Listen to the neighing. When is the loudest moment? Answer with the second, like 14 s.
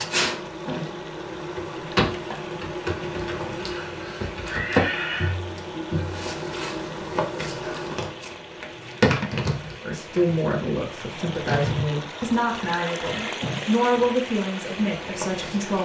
5 s.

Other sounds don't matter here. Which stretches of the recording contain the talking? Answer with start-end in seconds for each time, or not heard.
9.8-15.8.